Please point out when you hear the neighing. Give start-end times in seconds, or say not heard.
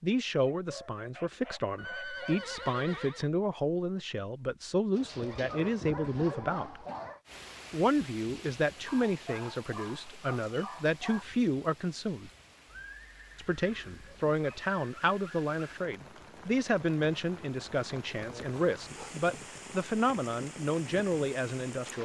1.8-3.3, 12.7-14.2.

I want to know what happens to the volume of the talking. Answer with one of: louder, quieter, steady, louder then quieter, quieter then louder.
steady.